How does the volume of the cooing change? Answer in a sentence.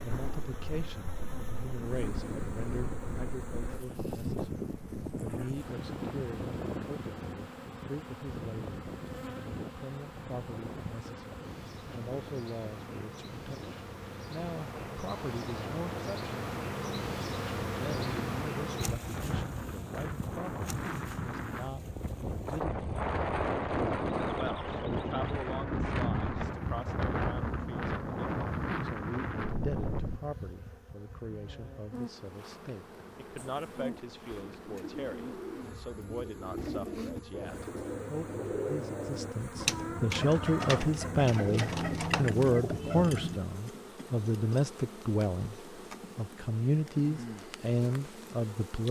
The volume of the cooing goes up.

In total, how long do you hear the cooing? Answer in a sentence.
You can hear the cooing for 10 seconds altogether.